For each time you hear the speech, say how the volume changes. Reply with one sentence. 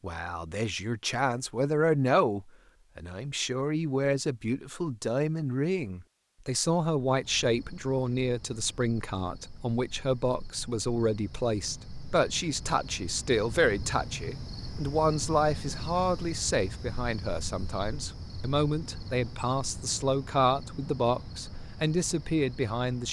The speech can be heard from 0.0 to 23.0 s, at a steady volume.